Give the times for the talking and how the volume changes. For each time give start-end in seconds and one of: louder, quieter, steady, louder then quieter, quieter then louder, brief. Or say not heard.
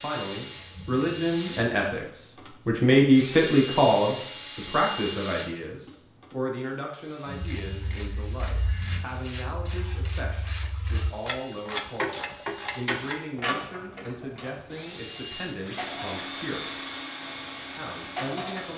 0.0-16.9 quieter
17.8-18.7 brief.